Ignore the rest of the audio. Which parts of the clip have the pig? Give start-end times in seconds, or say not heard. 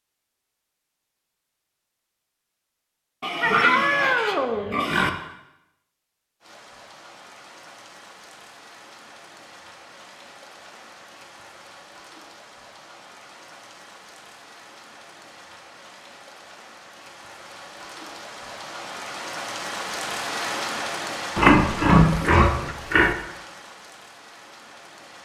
3.2-5.1, 21.4-23.1.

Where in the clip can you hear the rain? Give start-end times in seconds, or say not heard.
6.4-25.2.